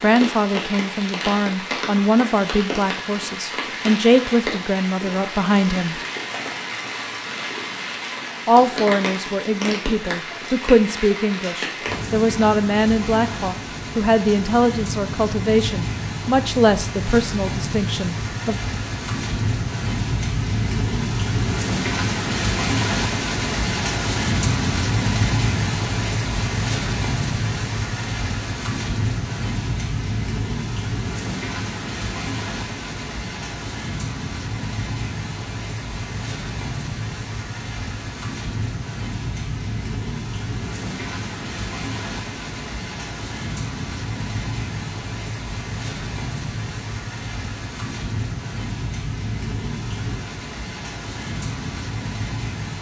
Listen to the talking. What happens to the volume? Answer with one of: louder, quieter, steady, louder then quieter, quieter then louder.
steady.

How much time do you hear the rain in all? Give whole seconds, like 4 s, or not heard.
53 s.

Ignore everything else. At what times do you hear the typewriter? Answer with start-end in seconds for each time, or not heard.
not heard.